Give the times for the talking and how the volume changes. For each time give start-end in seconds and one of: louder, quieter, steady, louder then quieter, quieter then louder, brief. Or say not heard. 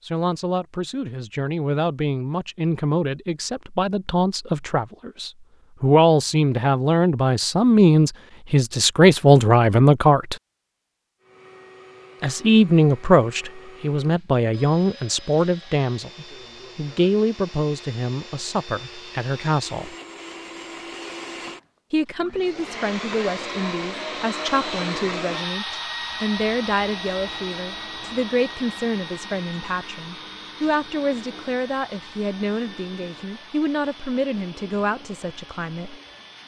0.0-10.3 louder
12.2-19.9 quieter
21.9-36.0 steady.